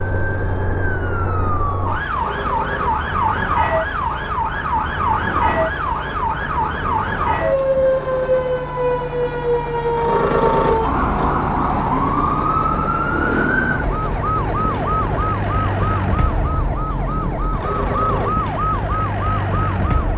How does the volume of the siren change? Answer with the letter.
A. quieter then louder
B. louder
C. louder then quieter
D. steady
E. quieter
D.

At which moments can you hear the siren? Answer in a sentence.
The siren can be heard from 0.0 to 20.1 s.